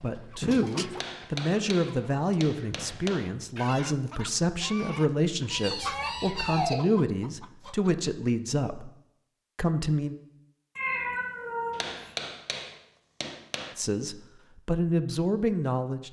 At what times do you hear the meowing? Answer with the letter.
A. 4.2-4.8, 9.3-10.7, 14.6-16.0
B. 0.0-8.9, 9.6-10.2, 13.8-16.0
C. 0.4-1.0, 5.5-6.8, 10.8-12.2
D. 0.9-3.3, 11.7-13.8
C.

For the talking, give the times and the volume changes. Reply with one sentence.
The talking can be heard from 0.0 to 8.9 s, at a steady volume; briefly from 9.6 to 10.2 s; and briefly from 13.8 to 16.0 s.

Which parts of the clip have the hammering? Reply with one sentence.
The hammering can be heard from 0.9 to 3.3 s and from 11.7 to 13.8 s.